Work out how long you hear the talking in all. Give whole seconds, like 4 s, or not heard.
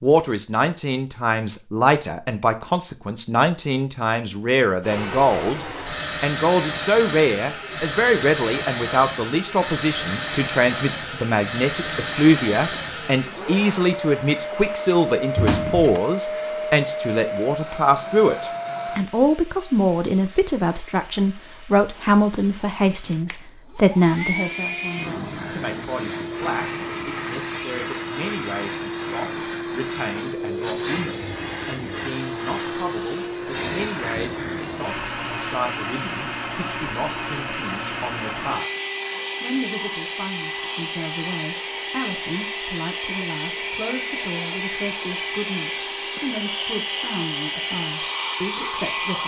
49 s.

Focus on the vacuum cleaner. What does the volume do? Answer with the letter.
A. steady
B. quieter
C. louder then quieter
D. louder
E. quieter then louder
A.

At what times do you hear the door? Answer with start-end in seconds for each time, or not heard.
15.3-16.0.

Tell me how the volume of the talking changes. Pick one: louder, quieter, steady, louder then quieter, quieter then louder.
quieter.